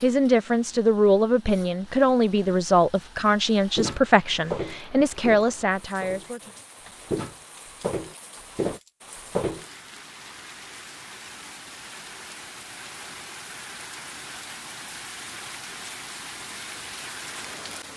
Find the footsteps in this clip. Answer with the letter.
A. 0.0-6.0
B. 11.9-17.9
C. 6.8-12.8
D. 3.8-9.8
D.